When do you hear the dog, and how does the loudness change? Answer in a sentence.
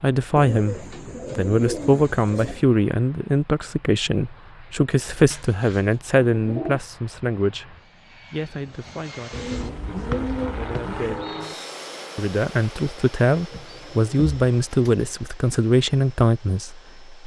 You can't hear the dog here.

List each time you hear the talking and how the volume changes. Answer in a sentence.
You can hear the talking from 0.0 to 11.2 s, getting quieter; and from 12.2 to 17.2 s, at a steady volume.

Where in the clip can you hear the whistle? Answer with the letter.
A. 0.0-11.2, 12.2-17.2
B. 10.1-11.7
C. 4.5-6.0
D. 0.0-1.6
B.